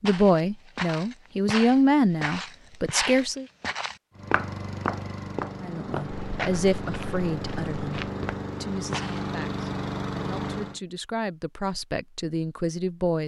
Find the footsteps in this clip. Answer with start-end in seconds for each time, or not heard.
0.0-9.2.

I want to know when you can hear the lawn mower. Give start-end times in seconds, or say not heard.
4.1-10.8.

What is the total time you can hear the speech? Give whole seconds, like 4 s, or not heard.
11 s.